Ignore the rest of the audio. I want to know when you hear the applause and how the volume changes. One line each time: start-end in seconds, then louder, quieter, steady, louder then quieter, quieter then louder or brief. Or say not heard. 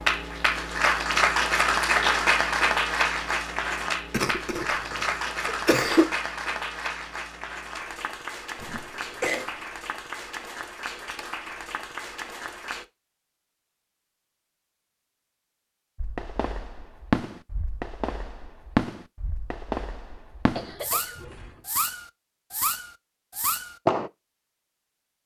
0.0-12.8 quieter.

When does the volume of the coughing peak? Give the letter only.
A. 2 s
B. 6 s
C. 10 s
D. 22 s
B.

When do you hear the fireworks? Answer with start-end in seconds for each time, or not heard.
16.0-24.1.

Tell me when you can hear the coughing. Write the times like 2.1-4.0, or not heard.
4.1-6.1, 8.6-9.5, 20.6-21.6.